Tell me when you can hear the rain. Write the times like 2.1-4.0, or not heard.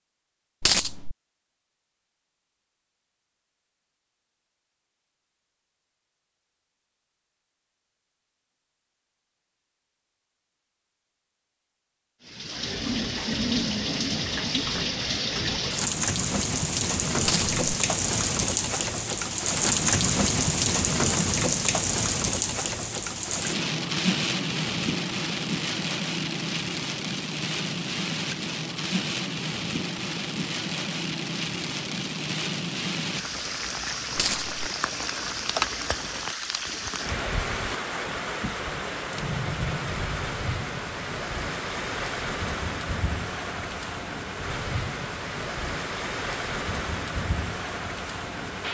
12.2-48.6.